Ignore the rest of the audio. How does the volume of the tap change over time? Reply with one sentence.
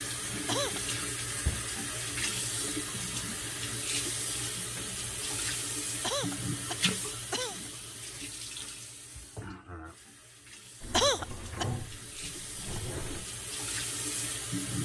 The volume of the tap goes down, then up.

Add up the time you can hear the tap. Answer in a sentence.
The tap can be heard for 15 seconds in total.